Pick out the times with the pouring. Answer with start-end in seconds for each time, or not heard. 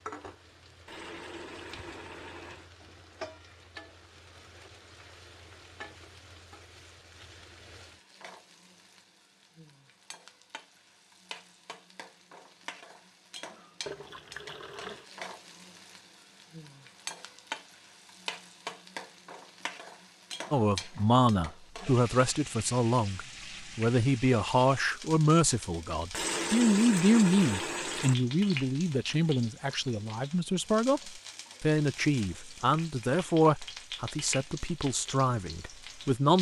0.8-2.7, 13.8-15.1, 26.1-28.1.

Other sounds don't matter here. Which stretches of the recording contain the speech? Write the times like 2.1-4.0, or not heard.
20.5-36.3.